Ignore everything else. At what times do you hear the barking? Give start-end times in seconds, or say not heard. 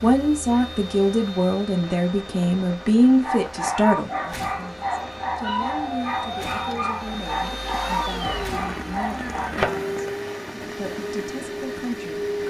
3.2-9.6.